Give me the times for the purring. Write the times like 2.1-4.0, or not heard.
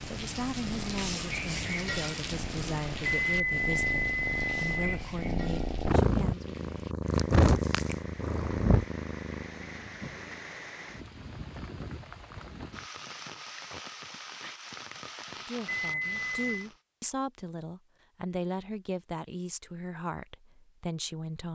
0.0-10.5.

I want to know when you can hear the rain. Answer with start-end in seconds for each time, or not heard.
0.0-16.8.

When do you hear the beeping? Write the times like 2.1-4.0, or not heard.
3.0-5.0, 15.7-16.6.